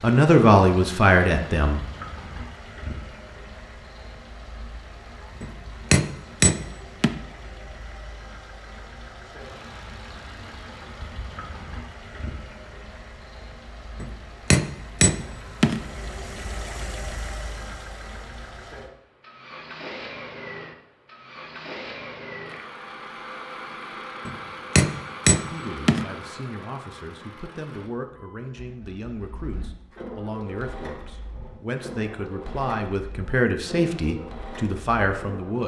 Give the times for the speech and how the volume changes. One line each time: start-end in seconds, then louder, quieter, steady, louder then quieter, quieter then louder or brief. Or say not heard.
0.0-1.8 brief
25.5-35.6 louder.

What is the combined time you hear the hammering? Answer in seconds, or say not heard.
5 s.